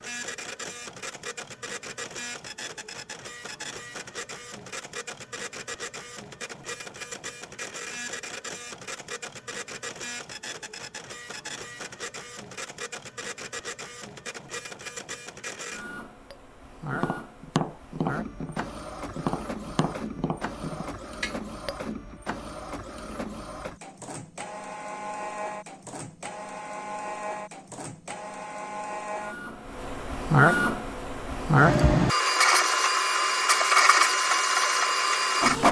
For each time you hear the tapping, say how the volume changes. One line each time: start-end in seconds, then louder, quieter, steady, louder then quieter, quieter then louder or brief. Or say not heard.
16.3-21.8 quieter.